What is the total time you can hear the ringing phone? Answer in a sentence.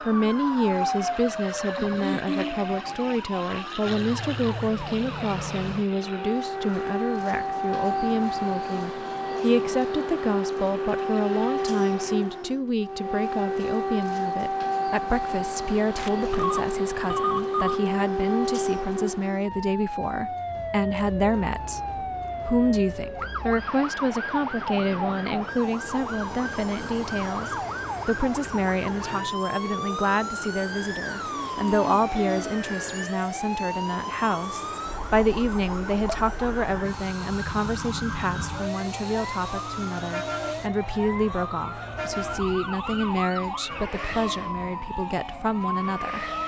The ringing phone can be heard for 2 seconds in total.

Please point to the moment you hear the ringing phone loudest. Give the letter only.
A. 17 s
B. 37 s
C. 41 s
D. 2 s
A.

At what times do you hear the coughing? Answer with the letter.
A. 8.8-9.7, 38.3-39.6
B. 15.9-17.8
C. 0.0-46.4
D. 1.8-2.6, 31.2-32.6
D.